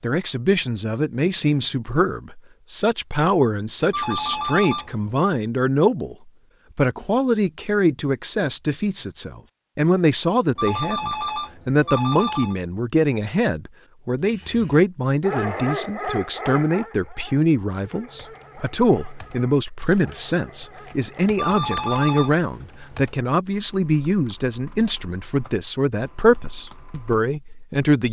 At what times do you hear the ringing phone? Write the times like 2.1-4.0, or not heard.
3.9-5.2, 10.6-12.6, 21.4-22.4.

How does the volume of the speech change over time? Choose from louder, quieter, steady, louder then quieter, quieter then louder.
steady.